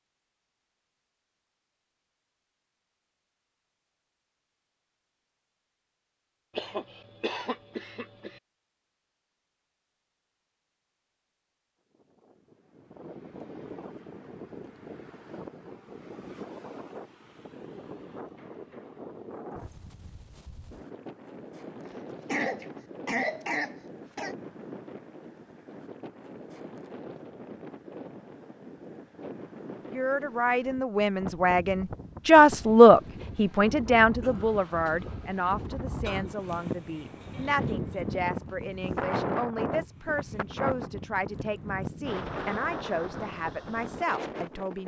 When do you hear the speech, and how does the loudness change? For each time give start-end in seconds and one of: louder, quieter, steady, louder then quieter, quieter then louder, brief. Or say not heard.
29.9-44.8 quieter.